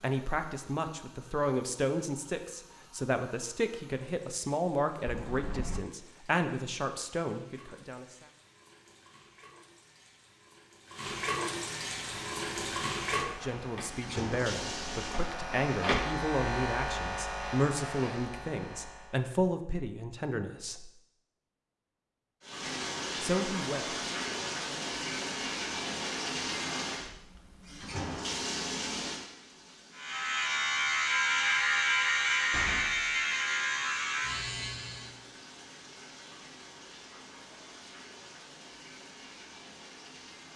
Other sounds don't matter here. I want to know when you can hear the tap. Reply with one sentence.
The tap can be heard from 0.0 to 15.3 s and from 22.4 to 40.5 s.